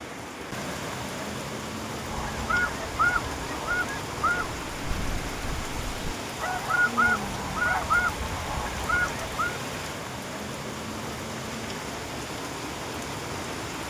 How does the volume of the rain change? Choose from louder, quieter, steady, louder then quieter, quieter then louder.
steady.